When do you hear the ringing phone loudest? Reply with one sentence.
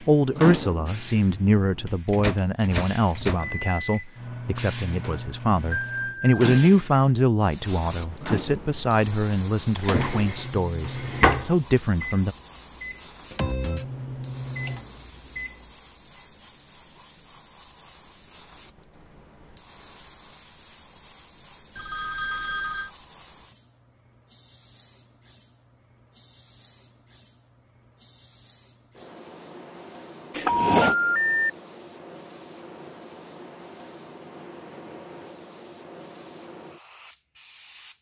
The volume of the ringing phone peaks at 31 seconds.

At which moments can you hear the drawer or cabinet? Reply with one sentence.
The drawer or cabinet can be heard from 9.8 to 11.5 s and from 30.3 to 30.9 s.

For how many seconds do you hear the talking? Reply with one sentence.
You can hear the talking for 12 seconds altogether.